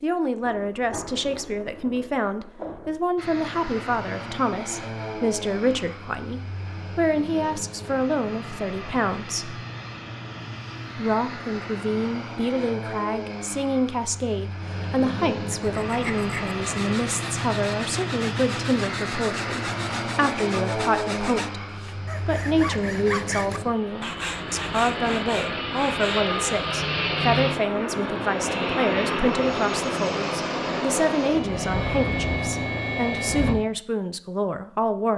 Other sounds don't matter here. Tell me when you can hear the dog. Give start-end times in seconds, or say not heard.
not heard.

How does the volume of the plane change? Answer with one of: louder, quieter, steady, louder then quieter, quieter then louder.
louder.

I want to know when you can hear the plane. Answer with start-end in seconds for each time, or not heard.
3.1-33.5.